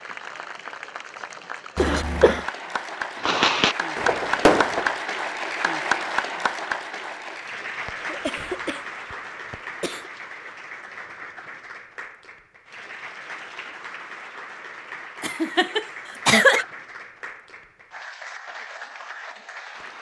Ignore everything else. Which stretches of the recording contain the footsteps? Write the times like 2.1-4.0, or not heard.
not heard.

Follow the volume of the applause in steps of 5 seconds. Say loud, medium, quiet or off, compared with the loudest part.
loud, loud, medium, medium.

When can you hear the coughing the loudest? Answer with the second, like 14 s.
16 s.